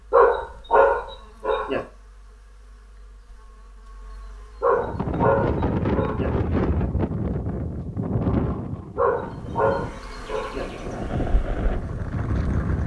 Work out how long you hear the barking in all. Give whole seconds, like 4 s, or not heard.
5 s.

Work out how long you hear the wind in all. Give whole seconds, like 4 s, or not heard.
8 s.